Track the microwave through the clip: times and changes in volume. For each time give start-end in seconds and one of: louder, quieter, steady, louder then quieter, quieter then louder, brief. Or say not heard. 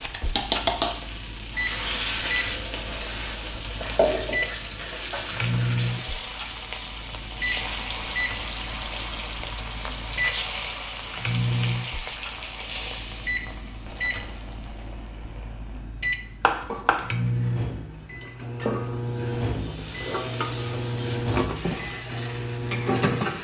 0.0-23.3 steady.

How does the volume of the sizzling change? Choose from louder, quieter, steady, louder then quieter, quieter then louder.
quieter then louder.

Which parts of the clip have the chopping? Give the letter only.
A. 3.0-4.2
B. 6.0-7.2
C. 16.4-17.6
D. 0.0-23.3
C.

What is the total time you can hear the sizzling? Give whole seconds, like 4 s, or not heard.
23 s.